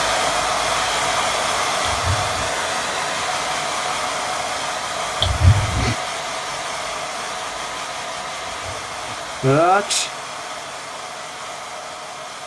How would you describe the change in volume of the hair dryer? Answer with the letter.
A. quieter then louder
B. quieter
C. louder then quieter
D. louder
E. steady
B.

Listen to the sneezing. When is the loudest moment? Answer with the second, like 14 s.
10 s.